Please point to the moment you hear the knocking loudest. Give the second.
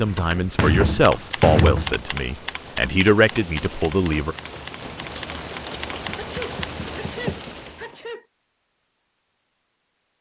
2 s.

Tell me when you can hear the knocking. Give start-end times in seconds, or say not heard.
0.3-2.0, 6.0-7.4.